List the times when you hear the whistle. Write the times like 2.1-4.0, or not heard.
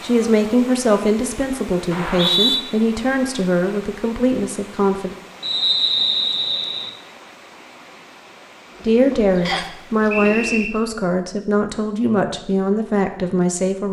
1.9-2.6, 5.4-6.9, 9.4-10.7.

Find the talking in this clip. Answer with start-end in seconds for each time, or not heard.
0.0-5.2, 8.8-13.8.